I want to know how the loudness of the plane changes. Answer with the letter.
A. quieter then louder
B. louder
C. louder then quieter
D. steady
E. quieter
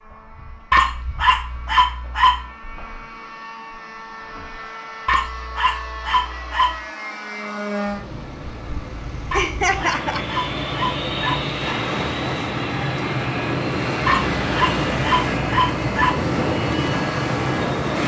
B.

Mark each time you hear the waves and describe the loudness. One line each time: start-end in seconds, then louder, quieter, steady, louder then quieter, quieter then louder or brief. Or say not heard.
8.0-18.0 louder.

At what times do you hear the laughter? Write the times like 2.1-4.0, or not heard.
9.3-10.3.